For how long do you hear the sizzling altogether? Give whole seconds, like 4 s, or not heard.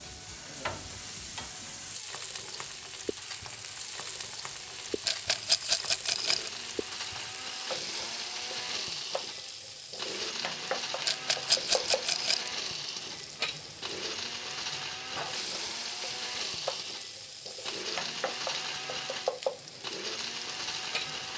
21 s.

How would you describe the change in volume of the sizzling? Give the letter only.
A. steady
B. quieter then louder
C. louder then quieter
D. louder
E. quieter
A.